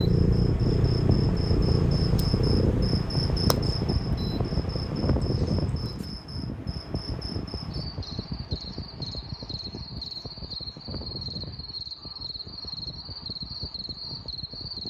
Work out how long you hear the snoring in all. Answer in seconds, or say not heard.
not heard.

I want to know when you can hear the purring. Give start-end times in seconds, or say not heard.
0.0-6.0.